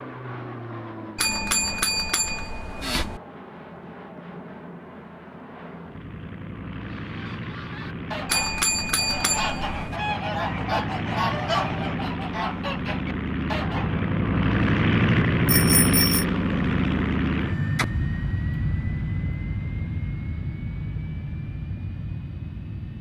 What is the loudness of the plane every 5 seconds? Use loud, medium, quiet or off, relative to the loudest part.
quiet, quiet, loud, loud, medium.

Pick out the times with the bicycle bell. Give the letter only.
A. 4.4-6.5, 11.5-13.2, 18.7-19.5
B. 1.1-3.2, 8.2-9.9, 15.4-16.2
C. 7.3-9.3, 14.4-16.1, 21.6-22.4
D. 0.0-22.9
B.